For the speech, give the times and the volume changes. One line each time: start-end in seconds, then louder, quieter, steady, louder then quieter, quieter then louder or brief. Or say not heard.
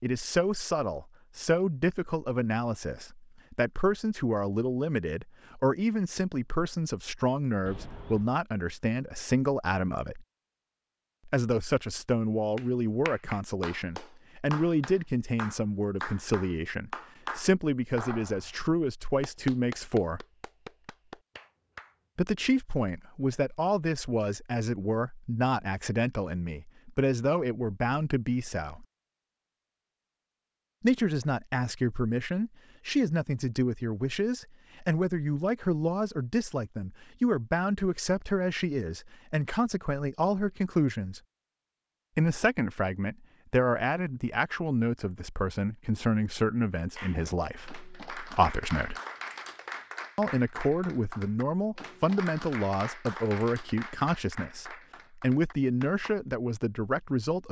0.0-10.2 steady
11.2-20.2 steady
22.1-28.9 steady
30.8-41.2 steady
42.1-49.0 steady
50.1-57.4 steady.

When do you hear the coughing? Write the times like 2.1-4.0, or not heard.
not heard.